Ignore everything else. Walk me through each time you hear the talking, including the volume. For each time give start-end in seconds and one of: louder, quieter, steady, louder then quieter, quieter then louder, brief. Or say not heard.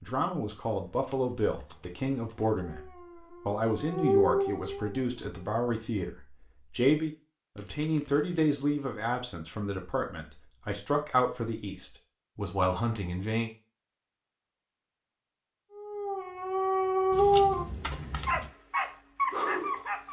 0.0-13.5 steady.